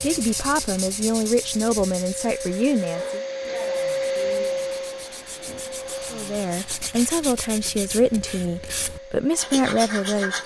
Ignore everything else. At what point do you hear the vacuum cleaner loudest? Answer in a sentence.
The volume of the vacuum cleaner peaks at 4 seconds.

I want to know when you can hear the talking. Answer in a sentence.
The talking can be heard from 0.0 to 3.2 s and from 6.1 to 10.4 s.